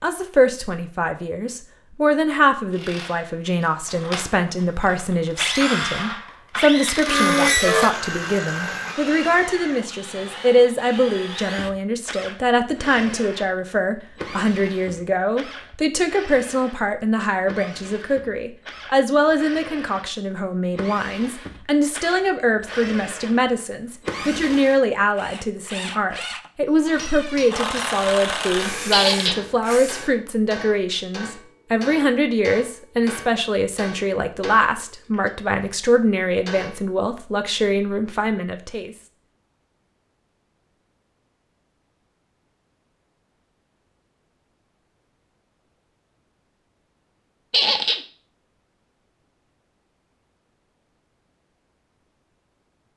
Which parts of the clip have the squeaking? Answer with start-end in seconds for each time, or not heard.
7.0-7.9, 28.9-29.4, 47.5-48.0.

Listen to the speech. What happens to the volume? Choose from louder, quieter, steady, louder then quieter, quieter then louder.
steady.